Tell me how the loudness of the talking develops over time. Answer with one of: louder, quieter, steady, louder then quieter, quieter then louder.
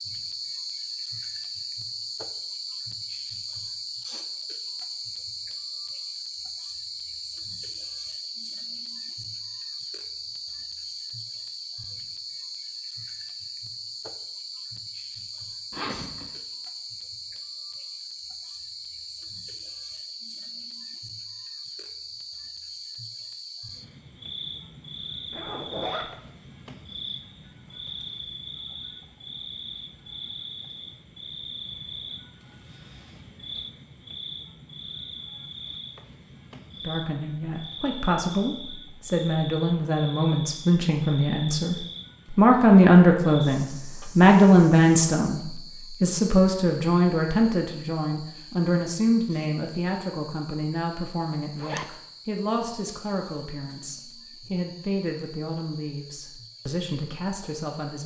louder then quieter.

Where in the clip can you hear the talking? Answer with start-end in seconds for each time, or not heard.
36.8-58.0.